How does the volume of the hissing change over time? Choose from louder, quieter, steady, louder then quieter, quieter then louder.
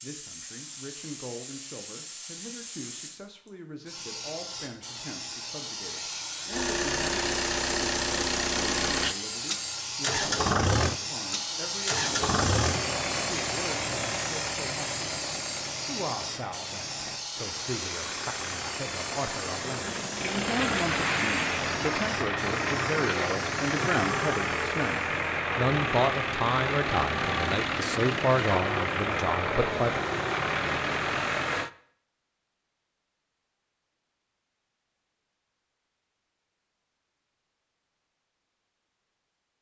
louder then quieter.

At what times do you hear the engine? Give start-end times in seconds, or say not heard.
6.5-31.7.